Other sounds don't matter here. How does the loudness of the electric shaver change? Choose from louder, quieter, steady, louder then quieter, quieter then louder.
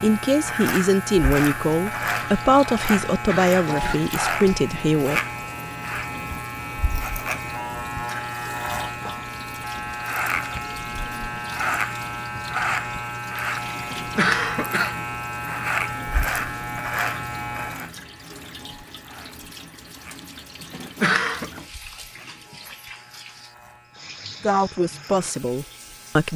quieter.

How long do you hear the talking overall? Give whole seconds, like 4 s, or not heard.
7 s.